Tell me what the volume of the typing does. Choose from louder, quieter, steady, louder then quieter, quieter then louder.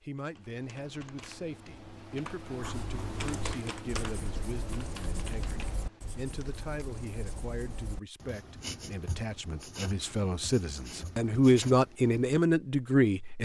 louder then quieter.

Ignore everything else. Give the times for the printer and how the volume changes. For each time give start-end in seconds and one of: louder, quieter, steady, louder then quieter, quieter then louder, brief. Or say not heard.
not heard.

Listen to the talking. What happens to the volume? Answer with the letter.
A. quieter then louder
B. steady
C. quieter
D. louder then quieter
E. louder
E.